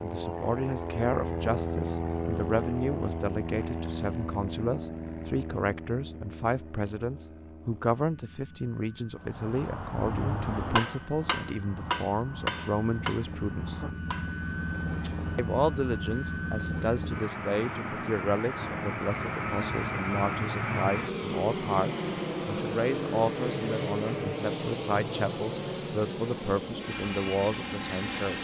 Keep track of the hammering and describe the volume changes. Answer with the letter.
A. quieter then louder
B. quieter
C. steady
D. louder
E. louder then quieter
B.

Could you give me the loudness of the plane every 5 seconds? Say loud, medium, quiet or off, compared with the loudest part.
loud, quiet, medium, loud, loud, loud.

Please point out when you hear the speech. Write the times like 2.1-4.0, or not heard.
0.0-13.8, 15.3-28.3.